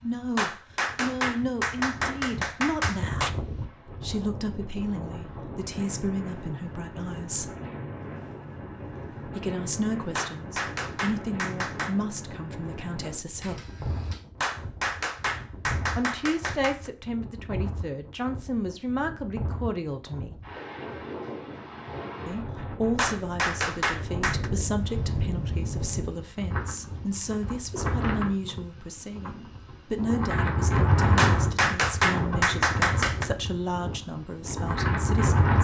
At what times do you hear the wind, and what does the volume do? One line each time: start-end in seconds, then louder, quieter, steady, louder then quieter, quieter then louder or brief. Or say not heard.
0.0-35.5 louder.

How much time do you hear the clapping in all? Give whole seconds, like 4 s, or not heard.
11 s.